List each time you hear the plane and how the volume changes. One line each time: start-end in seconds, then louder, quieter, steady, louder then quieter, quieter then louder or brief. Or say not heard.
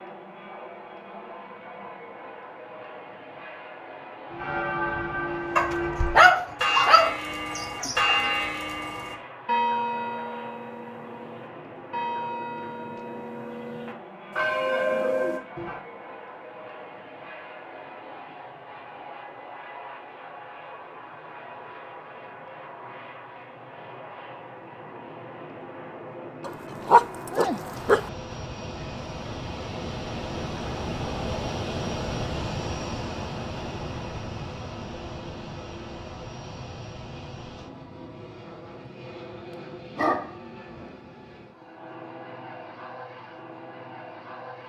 0.0-44.6 louder then quieter.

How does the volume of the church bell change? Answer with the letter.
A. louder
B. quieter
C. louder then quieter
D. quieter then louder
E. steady
D.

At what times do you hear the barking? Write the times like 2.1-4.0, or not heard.
5.5-8.2, 26.4-28.1, 40.0-40.9.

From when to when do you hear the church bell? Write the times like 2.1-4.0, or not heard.
4.3-15.8.